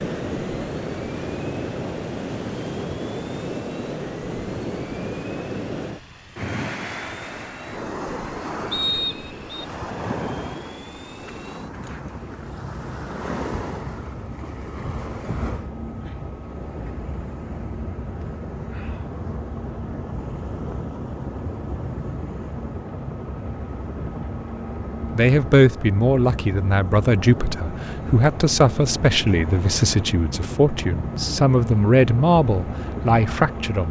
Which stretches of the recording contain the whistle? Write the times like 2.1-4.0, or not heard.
8.7-9.7.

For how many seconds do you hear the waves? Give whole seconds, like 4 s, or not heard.
34 s.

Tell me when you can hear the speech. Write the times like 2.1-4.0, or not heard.
25.1-33.8.